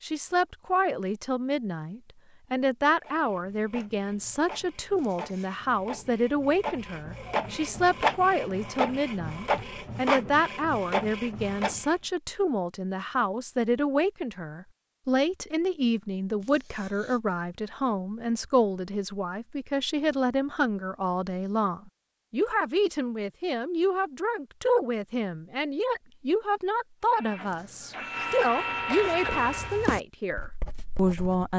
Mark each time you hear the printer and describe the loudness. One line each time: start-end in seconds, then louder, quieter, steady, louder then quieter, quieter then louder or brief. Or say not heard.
3.0-11.9 louder
27.1-29.9 brief.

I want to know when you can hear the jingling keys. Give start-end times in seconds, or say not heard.
not heard.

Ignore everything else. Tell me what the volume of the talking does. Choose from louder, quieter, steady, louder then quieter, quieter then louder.
steady.